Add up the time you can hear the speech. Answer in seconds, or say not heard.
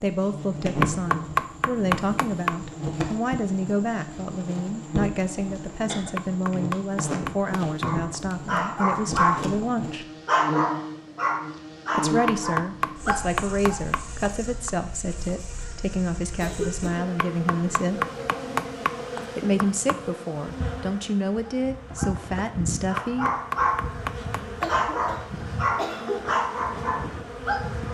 20 s.